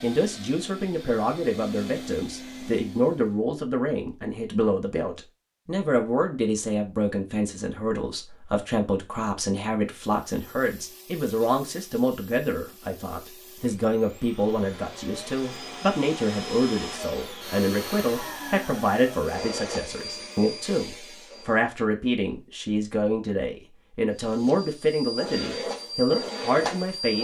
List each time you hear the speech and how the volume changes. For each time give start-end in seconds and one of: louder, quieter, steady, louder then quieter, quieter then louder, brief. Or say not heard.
0.0-27.1 steady.